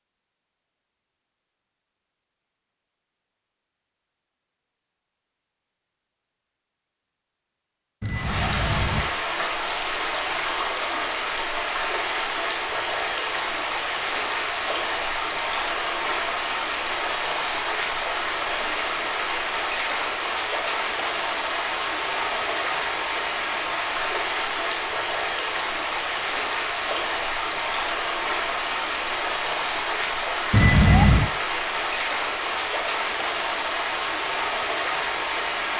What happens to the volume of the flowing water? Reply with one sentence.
The loudness of the flowing water stays about the same.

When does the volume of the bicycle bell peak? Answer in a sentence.
The volume of the bicycle bell peaks at 31 seconds.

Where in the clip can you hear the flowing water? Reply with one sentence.
You can hear the flowing water from 8.1 to 35.7 s.